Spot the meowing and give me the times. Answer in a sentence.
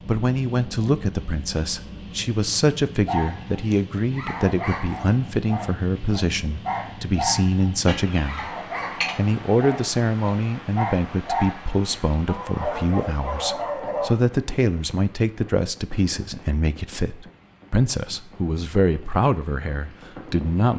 You can hear the meowing from 7.8 to 9.2 s.